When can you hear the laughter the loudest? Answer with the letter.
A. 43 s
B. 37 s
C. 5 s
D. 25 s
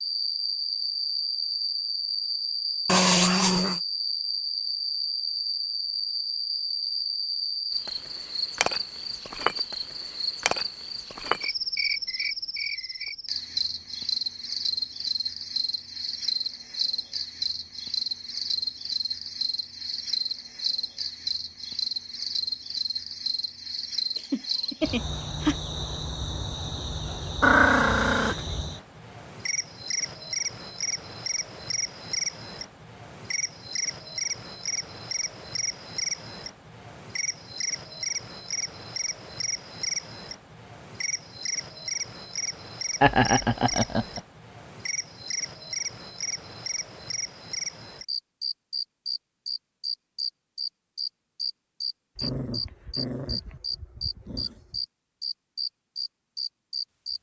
A.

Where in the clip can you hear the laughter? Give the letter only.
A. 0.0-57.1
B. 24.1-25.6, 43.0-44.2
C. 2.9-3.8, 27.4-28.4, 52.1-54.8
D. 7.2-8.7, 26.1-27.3
B.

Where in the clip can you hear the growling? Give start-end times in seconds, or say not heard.
2.9-3.8, 27.4-28.4, 52.1-54.8.